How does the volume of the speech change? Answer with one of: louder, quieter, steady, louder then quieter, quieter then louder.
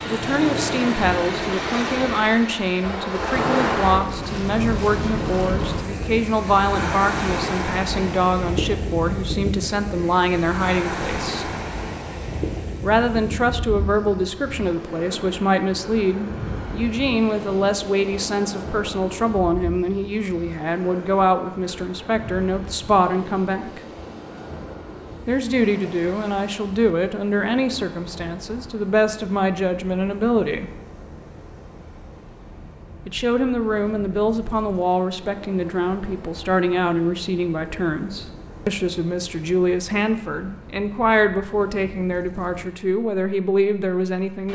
steady.